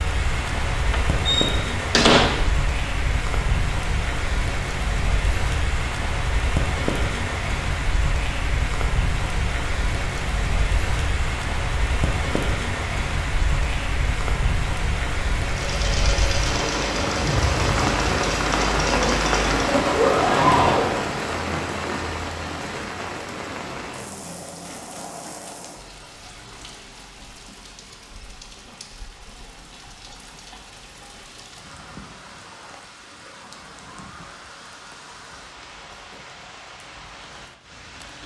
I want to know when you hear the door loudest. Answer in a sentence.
The volume of the door peaks at 2 seconds.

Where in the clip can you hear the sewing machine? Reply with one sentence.
You can hear the sewing machine from 15.4 to 21.2 s.